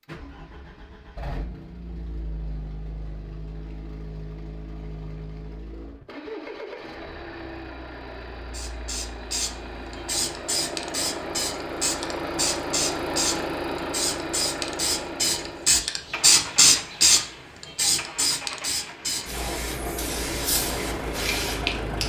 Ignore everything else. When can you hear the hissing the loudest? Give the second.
17 s.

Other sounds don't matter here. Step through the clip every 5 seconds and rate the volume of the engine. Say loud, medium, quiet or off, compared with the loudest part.
medium, medium, loud, medium, loud.